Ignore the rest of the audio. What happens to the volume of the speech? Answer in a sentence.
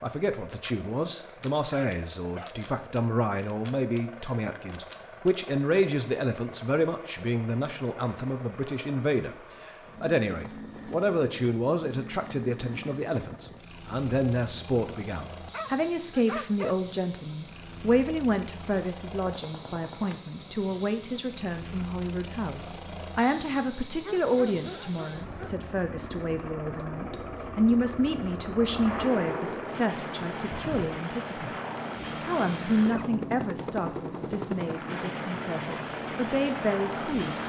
The volume of the speech stays about the same.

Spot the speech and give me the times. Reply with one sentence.
You can hear the speech from 0.0 to 31.6 s and from 32.2 to 37.4 s.